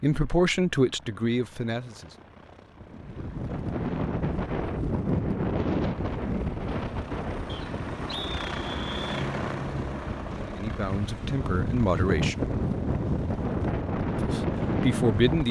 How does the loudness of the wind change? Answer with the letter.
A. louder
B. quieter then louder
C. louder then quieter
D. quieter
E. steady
B.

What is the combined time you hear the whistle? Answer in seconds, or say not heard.
2 s.